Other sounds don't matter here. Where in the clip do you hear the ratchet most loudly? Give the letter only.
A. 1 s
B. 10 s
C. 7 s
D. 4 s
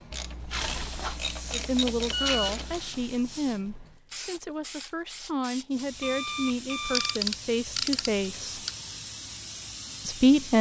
C.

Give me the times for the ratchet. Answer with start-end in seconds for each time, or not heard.
0.1-2.8, 7.0-8.7.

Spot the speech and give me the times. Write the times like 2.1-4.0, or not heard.
1.5-8.6, 10.1-10.5.